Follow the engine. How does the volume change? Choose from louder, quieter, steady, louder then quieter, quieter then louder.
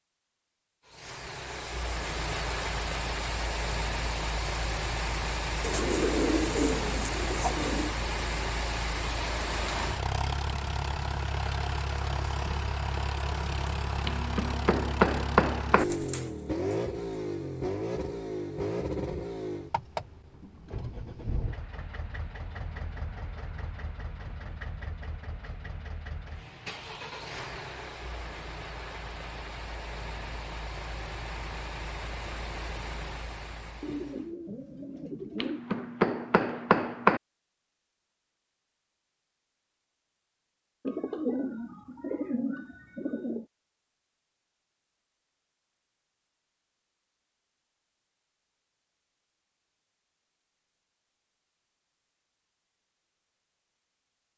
quieter.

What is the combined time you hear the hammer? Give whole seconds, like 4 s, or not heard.
4 s.